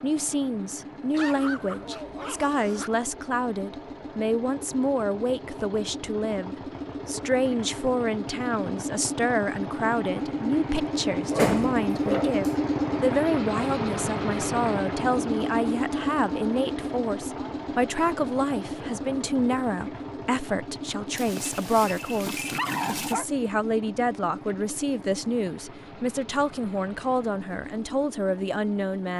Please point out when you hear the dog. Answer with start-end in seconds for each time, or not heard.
1.1-2.9, 10.8-12.5, 21.1-23.2.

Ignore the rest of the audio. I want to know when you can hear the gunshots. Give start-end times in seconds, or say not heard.
not heard.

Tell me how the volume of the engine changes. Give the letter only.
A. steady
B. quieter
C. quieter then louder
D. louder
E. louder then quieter
E.